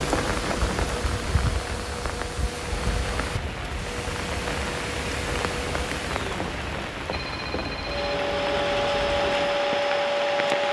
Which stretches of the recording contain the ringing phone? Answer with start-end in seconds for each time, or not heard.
0.1-0.9, 6.6-8.2.